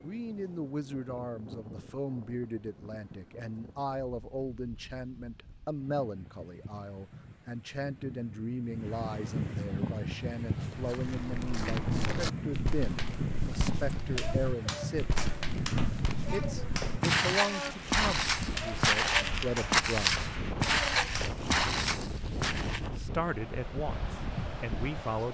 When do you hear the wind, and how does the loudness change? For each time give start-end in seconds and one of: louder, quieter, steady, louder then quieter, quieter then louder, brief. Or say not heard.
0.0-25.3 louder.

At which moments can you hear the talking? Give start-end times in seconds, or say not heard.
0.0-15.2, 16.3-20.2, 22.8-25.3.